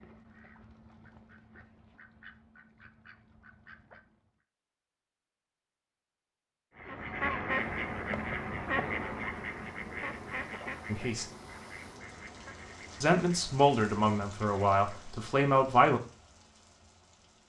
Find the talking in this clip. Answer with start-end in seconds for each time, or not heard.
10.8-11.2, 13.0-16.0.